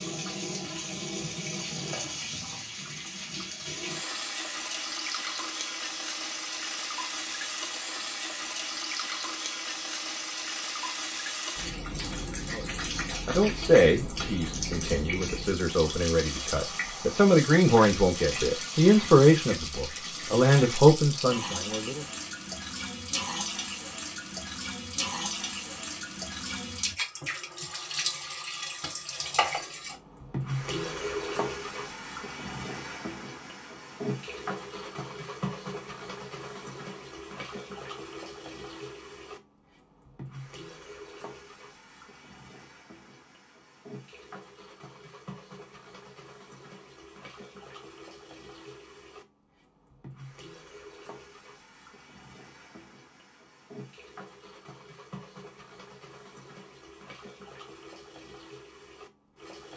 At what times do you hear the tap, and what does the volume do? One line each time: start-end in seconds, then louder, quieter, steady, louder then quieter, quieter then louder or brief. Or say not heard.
0.0-59.7 quieter.